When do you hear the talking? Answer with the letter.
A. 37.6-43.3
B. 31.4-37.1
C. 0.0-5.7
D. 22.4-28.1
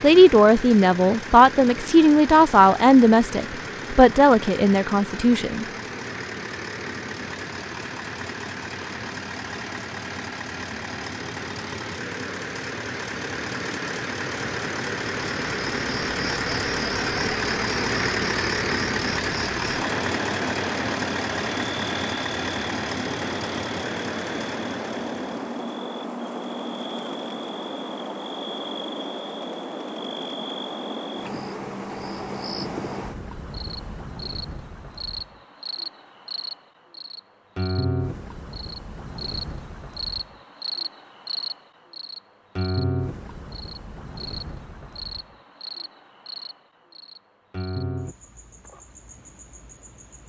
C.